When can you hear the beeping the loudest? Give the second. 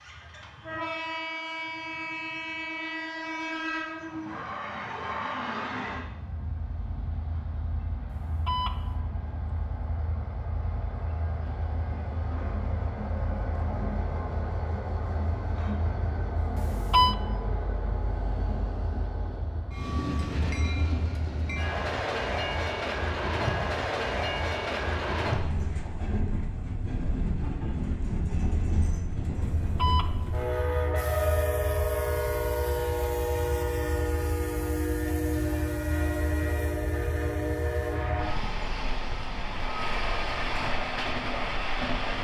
17 s.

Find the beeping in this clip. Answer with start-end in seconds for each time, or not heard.
8.1-8.9, 16.6-17.1, 29.6-30.4.